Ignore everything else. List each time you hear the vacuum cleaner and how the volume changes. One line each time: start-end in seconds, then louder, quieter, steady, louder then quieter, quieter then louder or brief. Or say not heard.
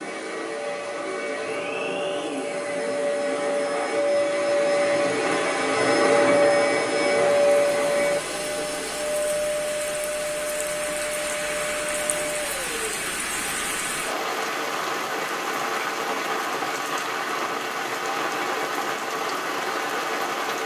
0.0-12.9 louder then quieter.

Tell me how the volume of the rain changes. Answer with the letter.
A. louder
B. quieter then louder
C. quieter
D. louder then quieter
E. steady
A.